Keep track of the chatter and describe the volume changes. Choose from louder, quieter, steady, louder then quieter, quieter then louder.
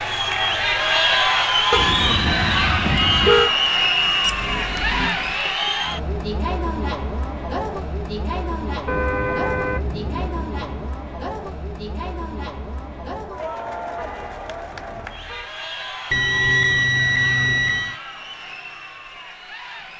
quieter.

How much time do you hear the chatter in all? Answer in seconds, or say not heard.
20 s.